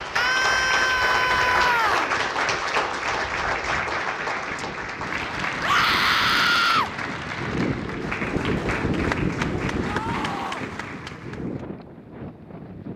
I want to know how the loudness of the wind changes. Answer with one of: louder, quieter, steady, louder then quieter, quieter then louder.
louder then quieter.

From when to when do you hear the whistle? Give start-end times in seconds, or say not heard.
not heard.